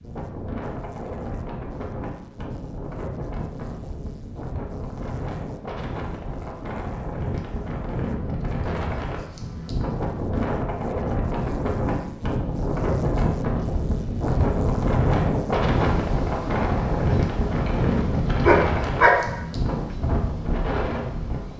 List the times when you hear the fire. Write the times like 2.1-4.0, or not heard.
not heard.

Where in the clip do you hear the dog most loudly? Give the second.
19 s.